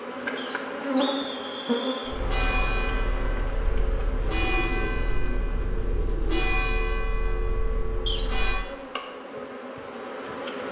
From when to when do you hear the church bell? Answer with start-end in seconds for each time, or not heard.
2.0-8.6.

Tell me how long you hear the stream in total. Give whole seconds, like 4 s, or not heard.
not heard.